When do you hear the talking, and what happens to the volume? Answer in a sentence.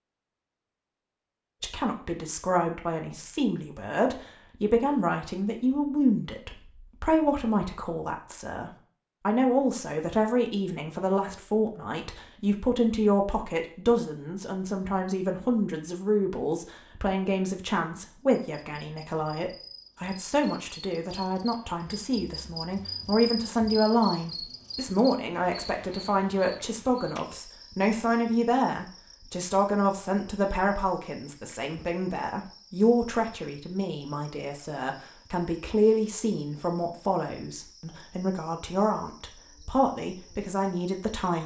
You can hear the talking from 1.6 to 41.4 s, at a steady volume.